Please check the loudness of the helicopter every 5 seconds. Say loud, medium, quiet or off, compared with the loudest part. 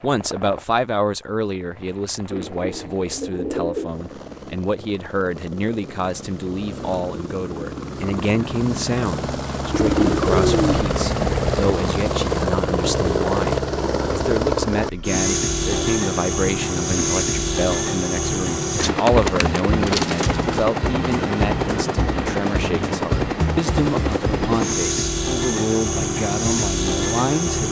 quiet, medium, loud, loud, loud, loud.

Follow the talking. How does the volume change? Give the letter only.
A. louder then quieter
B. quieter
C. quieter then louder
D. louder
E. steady
E.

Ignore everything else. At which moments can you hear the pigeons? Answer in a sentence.
You can hear the pigeons from 2.3 to 4.0 s, from 9.7 to 11.8 s and from 18.8 to 20.6 s.